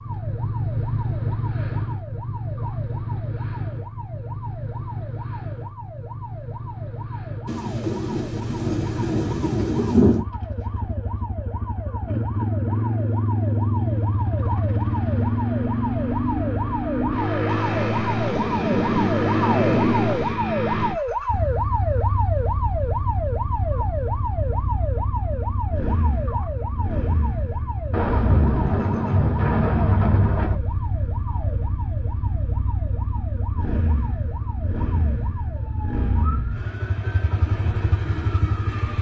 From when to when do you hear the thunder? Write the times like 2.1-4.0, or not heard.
7.5-10.2, 17.4-20.4, 27.9-30.6.